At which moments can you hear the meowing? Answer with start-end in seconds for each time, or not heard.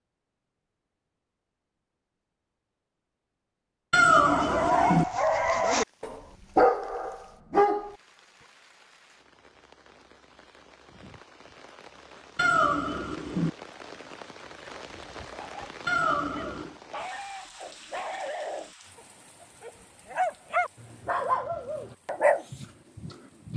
3.9-5.0, 12.3-13.5, 15.8-16.8.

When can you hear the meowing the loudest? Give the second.
4 s.